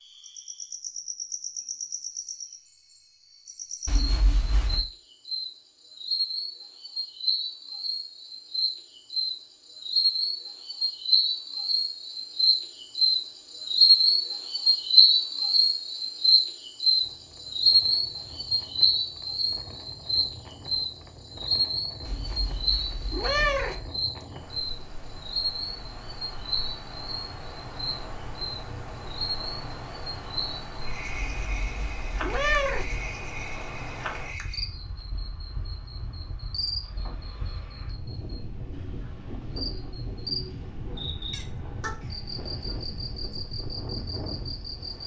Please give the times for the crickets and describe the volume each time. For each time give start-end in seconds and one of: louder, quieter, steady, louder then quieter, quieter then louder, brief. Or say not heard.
0.0-45.0 louder then quieter.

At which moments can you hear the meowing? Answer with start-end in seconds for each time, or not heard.
3.9-4.8, 22.1-23.9, 31.1-33.0.